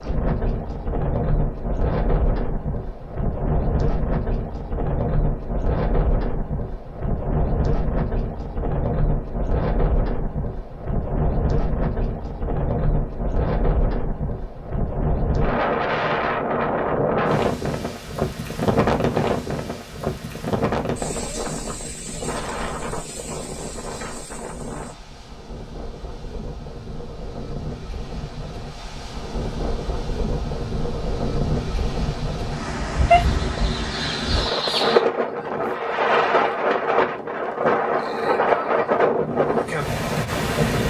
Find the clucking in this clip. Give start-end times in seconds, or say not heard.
33.1-35.0.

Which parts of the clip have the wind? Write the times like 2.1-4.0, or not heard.
0.0-40.8.